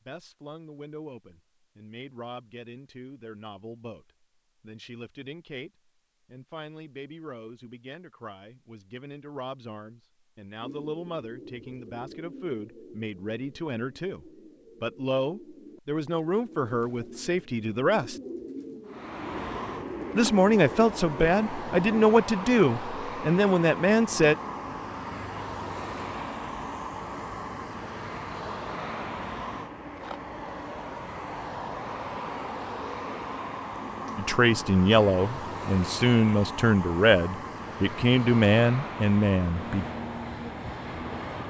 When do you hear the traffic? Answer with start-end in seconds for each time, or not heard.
18.9-41.4.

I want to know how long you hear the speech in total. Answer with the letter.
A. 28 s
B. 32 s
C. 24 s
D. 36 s
A.